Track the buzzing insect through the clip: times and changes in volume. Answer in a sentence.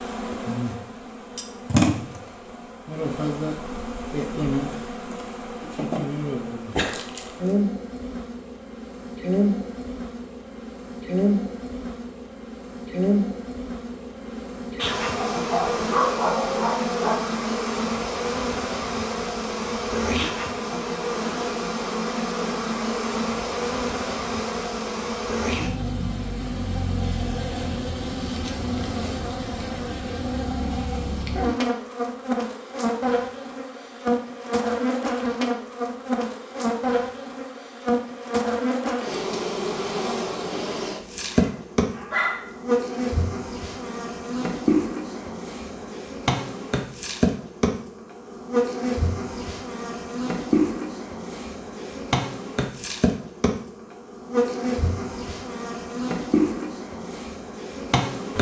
The buzzing insect can be heard from 0.0 to 58.3 s, at a steady volume.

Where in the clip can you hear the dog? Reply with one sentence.
You can hear the dog from 15.3 to 17.2 s and from 41.4 to 43.0 s.